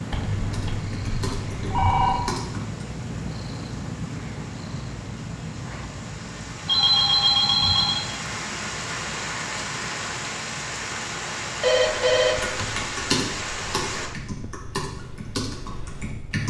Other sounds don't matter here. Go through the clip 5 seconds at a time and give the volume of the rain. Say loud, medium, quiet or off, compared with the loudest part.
quiet, loud, loud, off.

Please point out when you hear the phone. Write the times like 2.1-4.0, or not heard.
0.1-2.4, 6.7-8.1, 11.6-12.6.